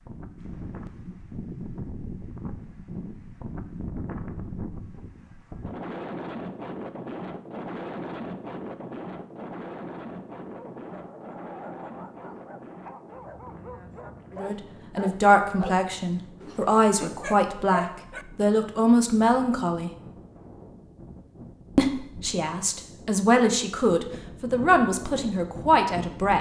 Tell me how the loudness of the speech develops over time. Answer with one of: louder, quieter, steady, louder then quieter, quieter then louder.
steady.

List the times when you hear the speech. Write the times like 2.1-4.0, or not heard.
14.3-19.9, 21.8-26.3.